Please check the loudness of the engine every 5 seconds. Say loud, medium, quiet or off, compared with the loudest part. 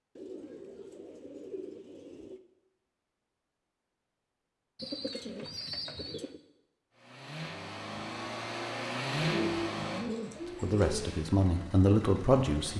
off, loud, quiet.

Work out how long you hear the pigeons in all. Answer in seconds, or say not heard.
6 s.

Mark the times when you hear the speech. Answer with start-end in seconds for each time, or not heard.
10.6-12.7.